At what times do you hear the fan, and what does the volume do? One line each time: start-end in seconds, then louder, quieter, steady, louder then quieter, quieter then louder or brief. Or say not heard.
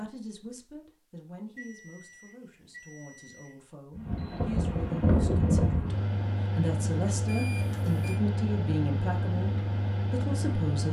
4.0-10.8 quieter.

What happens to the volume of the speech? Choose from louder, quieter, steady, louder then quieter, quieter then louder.
quieter then louder.